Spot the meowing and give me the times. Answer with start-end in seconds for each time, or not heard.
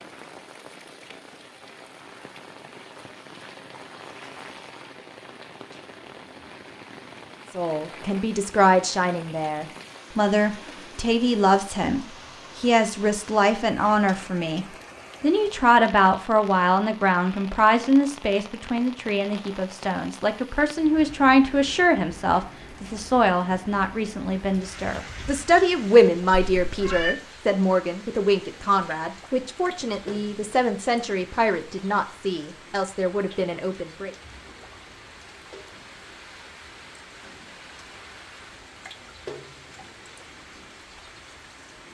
26.4-27.1.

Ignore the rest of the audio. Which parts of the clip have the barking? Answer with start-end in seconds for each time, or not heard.
not heard.